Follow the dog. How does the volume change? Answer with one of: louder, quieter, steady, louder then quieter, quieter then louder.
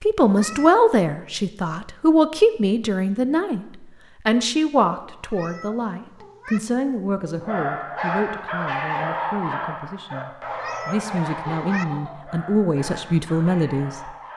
quieter.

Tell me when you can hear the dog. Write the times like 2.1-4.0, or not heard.
7.4-14.3.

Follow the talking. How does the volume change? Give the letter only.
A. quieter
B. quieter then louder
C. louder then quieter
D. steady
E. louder
B.